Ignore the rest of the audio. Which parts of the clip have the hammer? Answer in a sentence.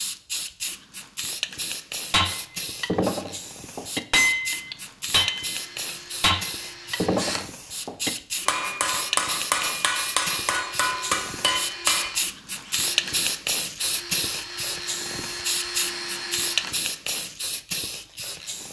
The hammer can be heard from 2.1 to 12.2 s.